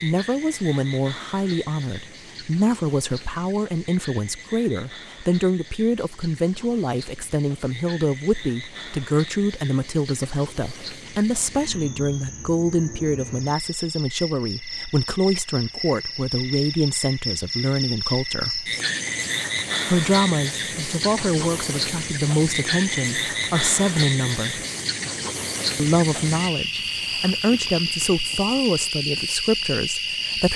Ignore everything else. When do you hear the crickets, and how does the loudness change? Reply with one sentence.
You can hear the crickets from 0.0 to 30.5 s, getting louder.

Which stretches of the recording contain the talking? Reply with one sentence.
The talking can be heard from 0.0 to 18.6 s, from 19.9 to 24.6 s and from 25.8 to 30.5 s.